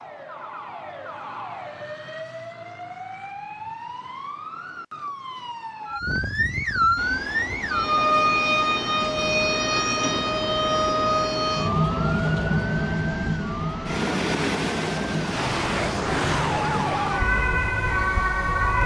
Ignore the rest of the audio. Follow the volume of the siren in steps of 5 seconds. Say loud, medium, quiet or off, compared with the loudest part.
quiet, loud, loud, loud.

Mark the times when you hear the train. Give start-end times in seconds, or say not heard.
7.0-18.8.